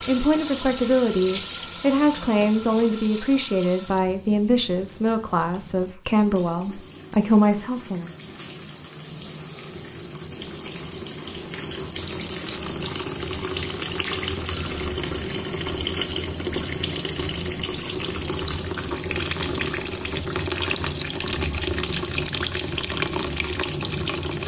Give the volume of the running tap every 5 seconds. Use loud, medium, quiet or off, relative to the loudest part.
medium, quiet, loud, loud, loud.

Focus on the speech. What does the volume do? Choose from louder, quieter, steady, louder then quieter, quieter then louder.
steady.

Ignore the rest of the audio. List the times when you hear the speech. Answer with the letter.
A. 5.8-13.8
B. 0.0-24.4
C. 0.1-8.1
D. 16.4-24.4
C.